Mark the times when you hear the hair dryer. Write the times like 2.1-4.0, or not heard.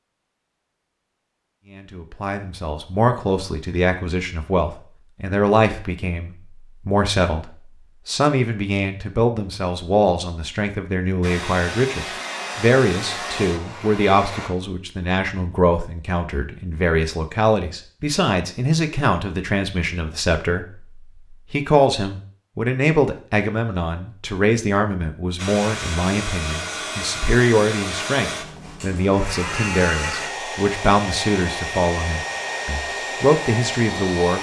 11.2-14.5, 25.4-34.3.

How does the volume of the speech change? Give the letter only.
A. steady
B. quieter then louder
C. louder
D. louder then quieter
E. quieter
A.